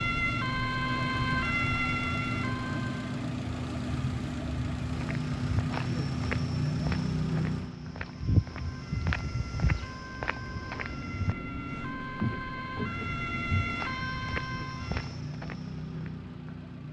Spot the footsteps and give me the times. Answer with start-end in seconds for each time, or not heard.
4.8-16.1.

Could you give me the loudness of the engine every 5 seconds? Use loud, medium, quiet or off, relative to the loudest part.
loud, loud, medium, medium.